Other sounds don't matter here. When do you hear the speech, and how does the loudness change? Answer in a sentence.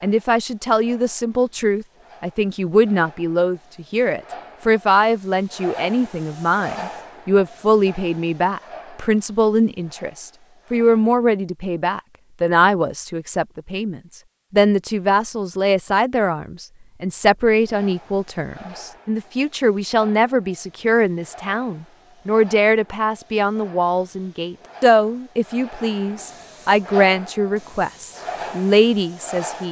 The speech can be heard from 0.0 to 29.6 s, at a steady volume.